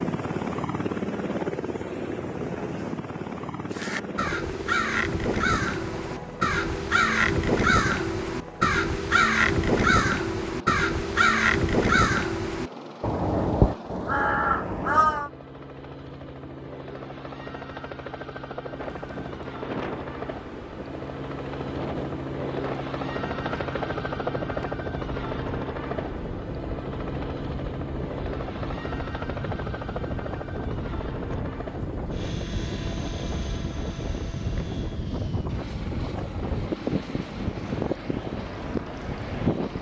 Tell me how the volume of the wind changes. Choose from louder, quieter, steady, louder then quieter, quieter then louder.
louder.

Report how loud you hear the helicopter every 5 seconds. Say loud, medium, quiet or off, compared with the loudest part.
loud, medium, medium, medium, loud, loud, medium, medium.